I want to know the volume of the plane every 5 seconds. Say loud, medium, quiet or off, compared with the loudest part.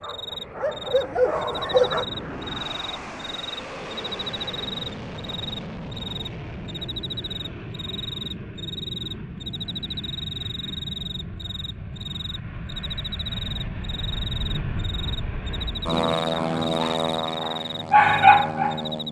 medium, medium, medium, loud.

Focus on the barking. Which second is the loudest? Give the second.
18 s.